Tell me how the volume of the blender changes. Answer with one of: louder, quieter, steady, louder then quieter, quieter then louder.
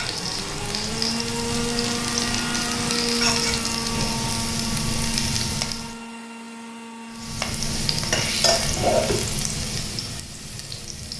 quieter.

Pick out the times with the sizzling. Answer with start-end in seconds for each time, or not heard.
0.0-6.0, 7.1-11.1.